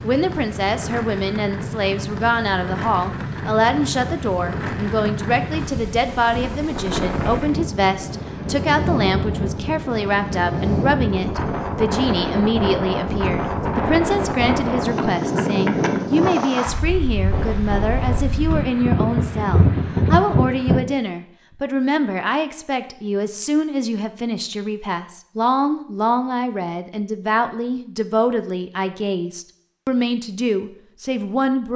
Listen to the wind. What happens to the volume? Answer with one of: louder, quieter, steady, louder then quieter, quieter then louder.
louder.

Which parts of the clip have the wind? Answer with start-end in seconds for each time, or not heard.
0.0-20.8.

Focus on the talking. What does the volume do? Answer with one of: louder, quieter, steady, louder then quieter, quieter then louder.
steady.